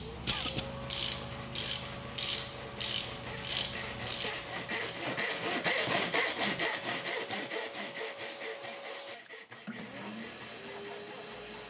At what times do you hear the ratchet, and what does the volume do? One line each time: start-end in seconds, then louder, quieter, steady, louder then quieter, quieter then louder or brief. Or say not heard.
0.0-6.5 quieter.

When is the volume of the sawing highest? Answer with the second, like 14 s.
6 s.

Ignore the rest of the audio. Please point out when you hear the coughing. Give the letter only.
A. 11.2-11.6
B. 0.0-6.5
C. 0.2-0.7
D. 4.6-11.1
C.